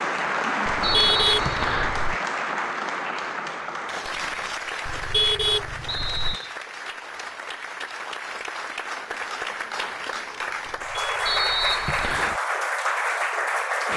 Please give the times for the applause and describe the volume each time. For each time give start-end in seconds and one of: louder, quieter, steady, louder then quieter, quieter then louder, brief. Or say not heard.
0.0-13.9 quieter then louder.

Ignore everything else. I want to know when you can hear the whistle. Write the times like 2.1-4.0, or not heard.
0.8-1.9, 5.8-6.5, 11.2-12.3.